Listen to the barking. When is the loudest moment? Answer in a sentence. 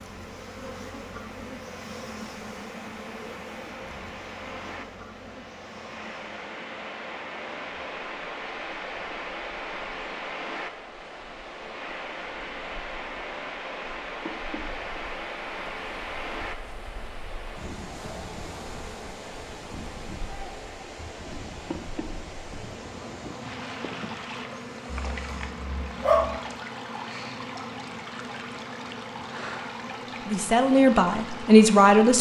The loudest moment of the barking is at 26 seconds.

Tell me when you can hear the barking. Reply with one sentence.
You can hear the barking from 24.9 to 26.4 s.